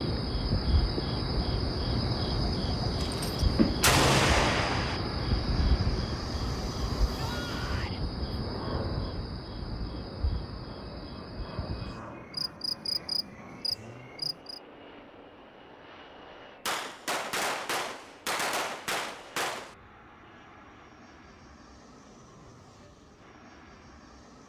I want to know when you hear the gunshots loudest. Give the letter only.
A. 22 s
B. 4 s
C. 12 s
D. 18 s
B.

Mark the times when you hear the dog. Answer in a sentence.
You can't hear the dog here.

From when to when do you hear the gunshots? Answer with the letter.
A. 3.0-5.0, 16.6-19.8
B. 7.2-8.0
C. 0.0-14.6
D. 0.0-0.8
A.